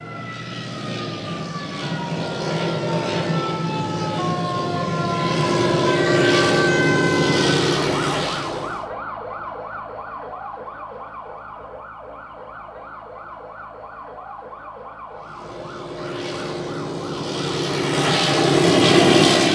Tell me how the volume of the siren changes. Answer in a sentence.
The loudness of the siren goes up, then down.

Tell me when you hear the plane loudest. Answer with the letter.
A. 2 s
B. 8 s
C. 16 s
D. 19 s
D.